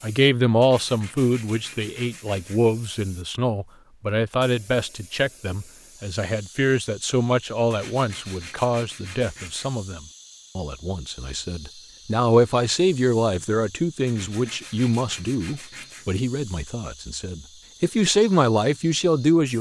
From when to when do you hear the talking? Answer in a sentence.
You can hear the talking from 0.0 to 19.5 s.